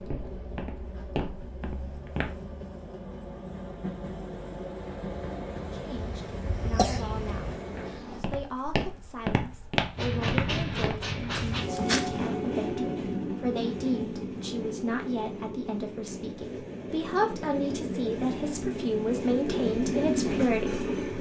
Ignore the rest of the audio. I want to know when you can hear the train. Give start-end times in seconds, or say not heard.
0.0-8.2, 9.9-21.1.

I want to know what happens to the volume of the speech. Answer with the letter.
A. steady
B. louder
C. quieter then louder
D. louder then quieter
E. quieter
B.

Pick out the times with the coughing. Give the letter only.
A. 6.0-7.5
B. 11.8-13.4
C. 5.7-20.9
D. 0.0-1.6
A.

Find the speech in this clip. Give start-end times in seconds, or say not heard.
5.7-20.9.